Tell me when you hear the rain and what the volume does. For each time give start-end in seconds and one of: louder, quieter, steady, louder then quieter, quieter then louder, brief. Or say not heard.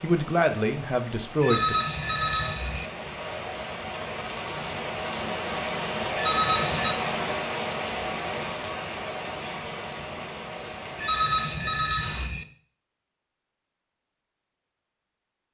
0.0-12.3 louder then quieter.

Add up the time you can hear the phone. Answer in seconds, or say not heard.
4 s.